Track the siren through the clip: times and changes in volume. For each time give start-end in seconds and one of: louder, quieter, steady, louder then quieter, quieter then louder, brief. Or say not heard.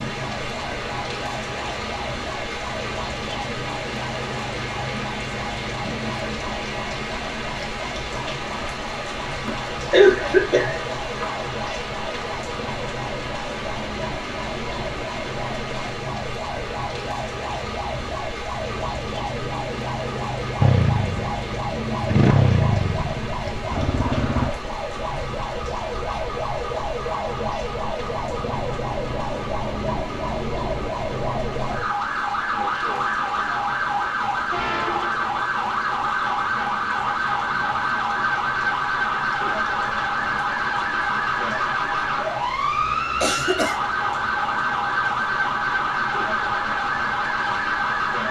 0.0-48.2 louder.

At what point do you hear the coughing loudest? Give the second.
10 s.